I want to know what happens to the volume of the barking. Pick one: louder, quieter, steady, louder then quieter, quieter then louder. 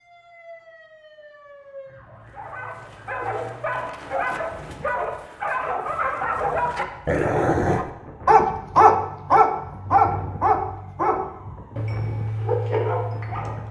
louder then quieter.